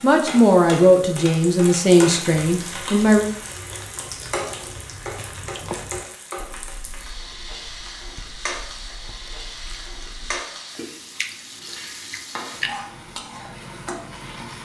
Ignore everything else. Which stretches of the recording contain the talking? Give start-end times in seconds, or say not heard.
0.0-3.3.